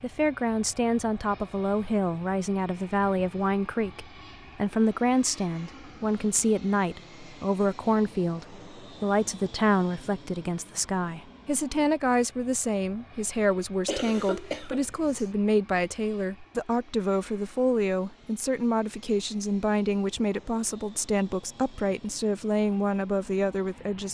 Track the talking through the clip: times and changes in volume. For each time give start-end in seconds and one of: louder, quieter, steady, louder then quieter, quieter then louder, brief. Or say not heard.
0.0-24.0 steady.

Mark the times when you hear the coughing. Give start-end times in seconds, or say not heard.
13.8-15.3.